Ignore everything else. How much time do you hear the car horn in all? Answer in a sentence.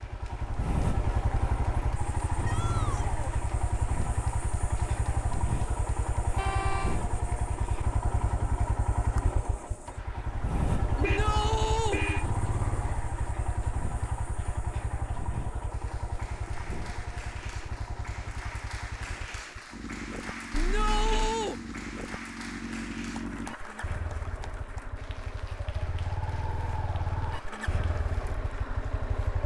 The car horn can be heard for 3 seconds in total.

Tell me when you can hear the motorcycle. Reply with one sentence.
You can hear the motorcycle from 0.0 to 29.4 s.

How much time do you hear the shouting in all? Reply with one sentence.
You can hear the shouting for 3 seconds altogether.